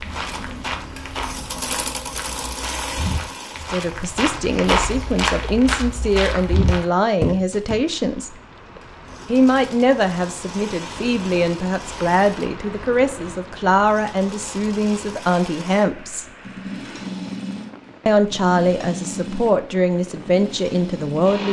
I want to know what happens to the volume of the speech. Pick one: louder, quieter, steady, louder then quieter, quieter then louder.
steady.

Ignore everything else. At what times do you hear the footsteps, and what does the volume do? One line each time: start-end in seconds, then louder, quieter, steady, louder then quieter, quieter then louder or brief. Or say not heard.
0.0-7.8 louder.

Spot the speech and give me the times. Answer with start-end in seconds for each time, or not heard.
3.7-8.3, 9.2-16.2, 18.1-21.4.